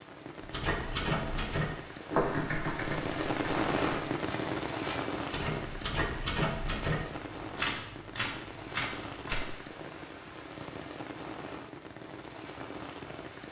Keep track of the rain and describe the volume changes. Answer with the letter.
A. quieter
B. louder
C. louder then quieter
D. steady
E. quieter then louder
C.